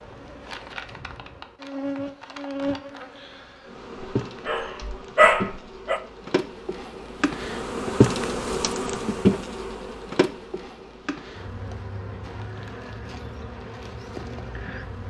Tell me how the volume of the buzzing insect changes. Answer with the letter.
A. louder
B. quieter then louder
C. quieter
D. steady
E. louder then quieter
E.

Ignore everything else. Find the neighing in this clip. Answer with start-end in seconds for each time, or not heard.
not heard.